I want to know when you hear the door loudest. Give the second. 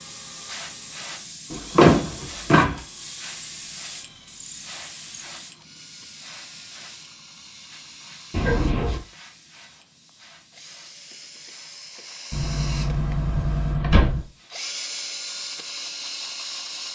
2 s.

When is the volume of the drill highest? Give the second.
15 s.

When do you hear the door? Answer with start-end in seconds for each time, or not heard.
1.5-2.8, 8.3-9.0, 12.3-14.2.